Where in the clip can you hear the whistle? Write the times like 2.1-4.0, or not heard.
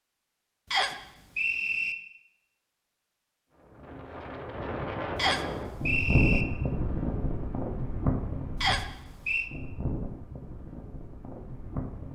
0.7-1.9, 5.2-6.5, 8.6-9.5.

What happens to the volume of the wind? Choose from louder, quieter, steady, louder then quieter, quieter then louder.
louder then quieter.